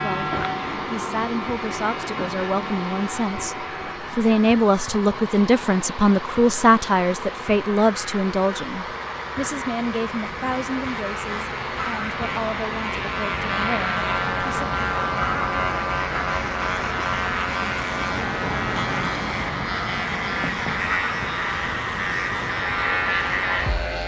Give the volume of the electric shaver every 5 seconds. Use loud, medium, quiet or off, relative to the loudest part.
medium, quiet, loud, loud, loud.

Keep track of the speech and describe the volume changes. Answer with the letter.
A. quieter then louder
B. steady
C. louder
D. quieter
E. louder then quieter
E.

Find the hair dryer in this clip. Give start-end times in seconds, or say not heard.
0.0-24.0.